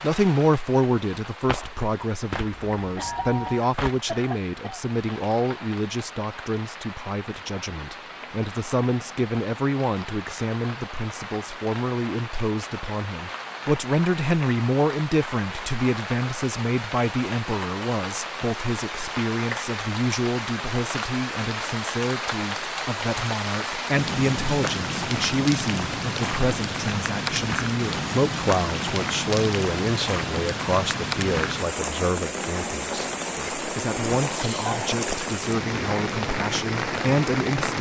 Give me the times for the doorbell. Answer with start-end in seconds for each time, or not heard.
2.5-3.6.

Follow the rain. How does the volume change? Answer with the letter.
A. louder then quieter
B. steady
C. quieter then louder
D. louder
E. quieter
D.